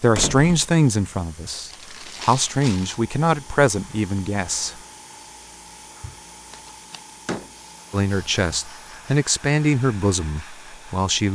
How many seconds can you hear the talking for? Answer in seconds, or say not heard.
8 s.